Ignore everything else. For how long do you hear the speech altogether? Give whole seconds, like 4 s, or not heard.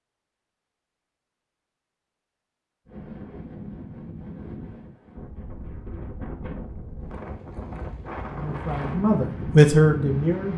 2 s.